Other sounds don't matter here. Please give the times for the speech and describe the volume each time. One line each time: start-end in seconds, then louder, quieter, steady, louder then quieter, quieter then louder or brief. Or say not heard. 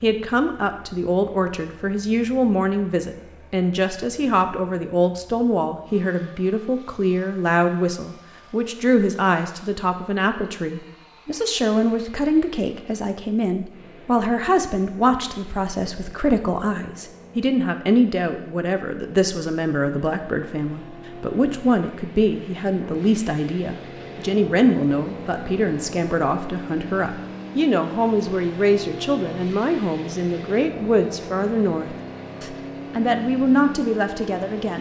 0.0-34.7 steady.